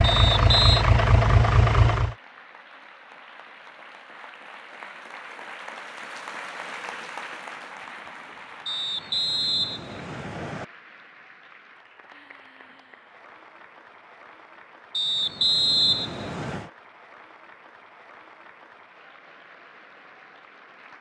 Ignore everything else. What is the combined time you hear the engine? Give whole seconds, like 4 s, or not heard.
2 s.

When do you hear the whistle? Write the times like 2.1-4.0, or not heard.
0.0-0.8, 8.7-10.7, 14.9-16.7.